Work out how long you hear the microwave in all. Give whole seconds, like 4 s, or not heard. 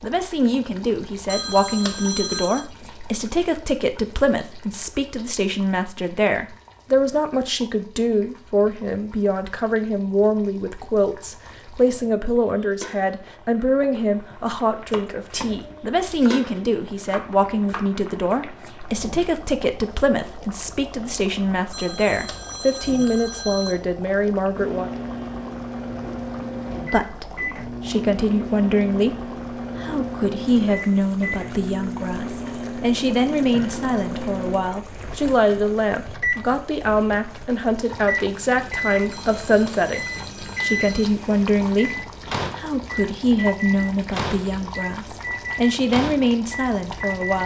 23 s.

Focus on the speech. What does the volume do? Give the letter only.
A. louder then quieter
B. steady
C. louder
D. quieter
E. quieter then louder
B.